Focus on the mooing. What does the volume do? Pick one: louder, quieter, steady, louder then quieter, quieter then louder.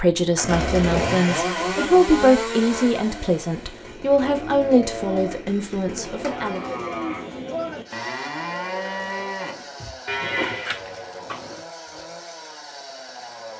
steady.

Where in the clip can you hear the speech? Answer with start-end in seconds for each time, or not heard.
0.0-6.6.